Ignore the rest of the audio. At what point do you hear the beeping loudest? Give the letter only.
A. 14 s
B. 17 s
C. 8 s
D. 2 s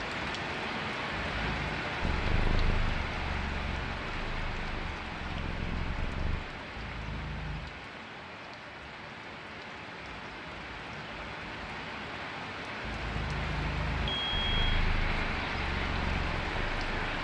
A.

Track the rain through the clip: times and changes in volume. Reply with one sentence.
You can hear the rain from 0.0 to 17.2 s, getting quieter then louder.